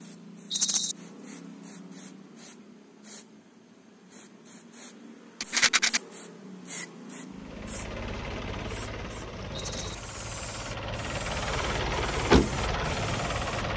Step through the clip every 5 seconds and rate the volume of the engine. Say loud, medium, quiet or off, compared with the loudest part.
off, medium, loud.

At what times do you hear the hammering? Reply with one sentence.
You can't hear the hammering here.